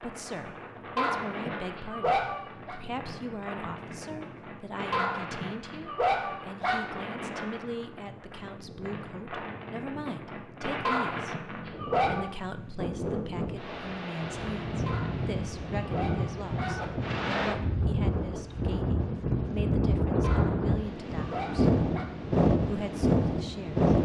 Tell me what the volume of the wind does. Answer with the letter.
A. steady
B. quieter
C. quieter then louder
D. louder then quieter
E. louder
E.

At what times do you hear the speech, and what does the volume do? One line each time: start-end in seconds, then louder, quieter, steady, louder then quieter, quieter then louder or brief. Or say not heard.
0.0-21.7 steady
22.6-23.9 brief.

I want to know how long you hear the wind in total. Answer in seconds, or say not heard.
24 s.